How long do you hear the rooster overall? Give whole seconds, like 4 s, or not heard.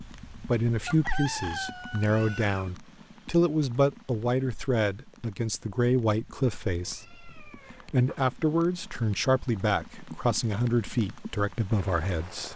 2 s.